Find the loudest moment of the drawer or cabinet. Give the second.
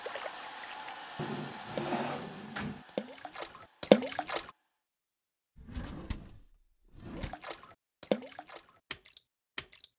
2 s.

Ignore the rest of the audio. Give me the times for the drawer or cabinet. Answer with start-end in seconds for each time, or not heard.
1.1-2.9, 5.5-7.3.